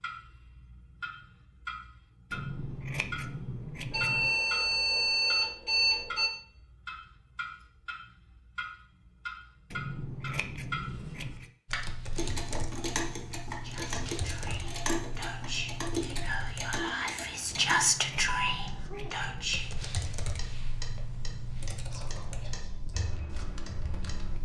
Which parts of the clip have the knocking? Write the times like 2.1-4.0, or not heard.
not heard.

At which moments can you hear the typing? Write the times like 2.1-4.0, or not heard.
11.7-16.8, 19.4-24.4.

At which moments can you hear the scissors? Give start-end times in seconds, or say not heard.
2.3-4.3, 9.7-11.5, 17.4-19.5.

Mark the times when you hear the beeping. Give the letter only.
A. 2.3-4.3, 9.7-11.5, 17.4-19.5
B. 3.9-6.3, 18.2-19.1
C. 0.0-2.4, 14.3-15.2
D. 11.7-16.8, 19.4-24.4
B.